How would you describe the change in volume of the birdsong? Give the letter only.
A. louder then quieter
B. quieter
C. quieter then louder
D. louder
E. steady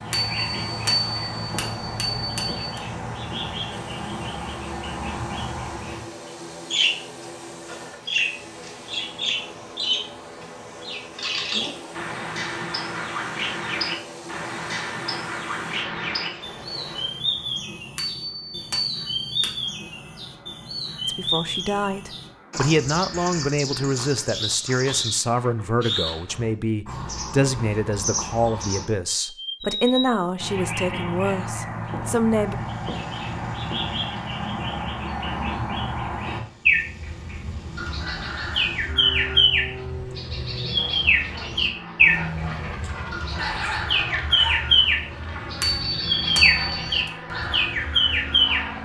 D.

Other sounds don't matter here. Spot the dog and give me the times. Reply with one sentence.
You can hear the dog from 42.8 to 44.7 s.